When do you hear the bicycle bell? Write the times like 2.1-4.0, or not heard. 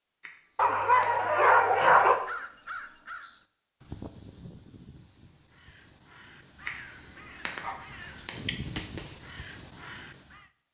0.2-2.1, 6.7-8.7.